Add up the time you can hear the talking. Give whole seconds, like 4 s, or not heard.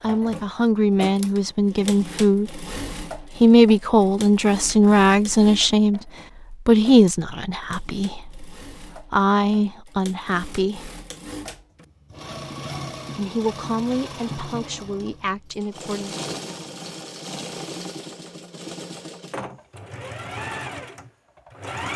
14 s.